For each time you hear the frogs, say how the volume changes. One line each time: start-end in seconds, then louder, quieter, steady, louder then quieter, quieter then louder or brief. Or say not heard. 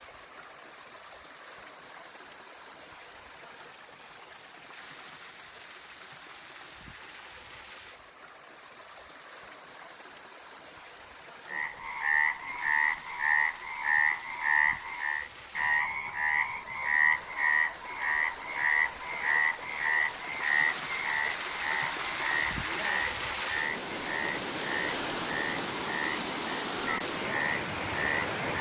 11.4-28.5 quieter.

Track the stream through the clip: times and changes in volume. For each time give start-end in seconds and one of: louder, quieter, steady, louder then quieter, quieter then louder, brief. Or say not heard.
0.0-28.5 louder.